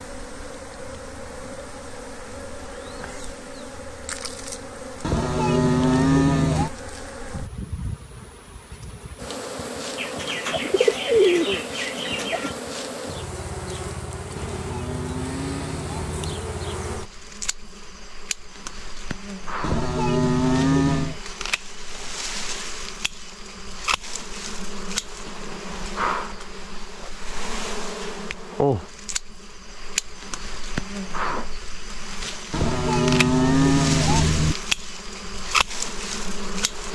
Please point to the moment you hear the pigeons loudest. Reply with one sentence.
The loudest moment of the pigeons is at 11 seconds.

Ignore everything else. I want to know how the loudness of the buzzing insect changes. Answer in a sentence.
The volume of the buzzing insect goes up.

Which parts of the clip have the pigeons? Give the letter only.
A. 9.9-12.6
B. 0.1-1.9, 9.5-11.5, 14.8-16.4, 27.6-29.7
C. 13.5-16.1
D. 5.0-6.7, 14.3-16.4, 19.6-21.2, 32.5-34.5
A.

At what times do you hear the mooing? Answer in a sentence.
The mooing can be heard from 5.0 to 6.7 s, from 14.3 to 16.4 s, from 19.6 to 21.2 s and from 32.5 to 34.5 s.